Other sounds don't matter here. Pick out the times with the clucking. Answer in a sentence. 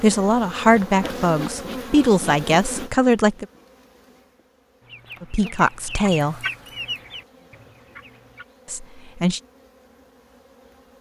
You can hear the clucking from 4.8 to 8.4 s.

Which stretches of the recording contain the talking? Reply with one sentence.
You can hear the talking from 0.0 to 3.5 s, from 5.2 to 6.3 s and from 8.7 to 9.4 s.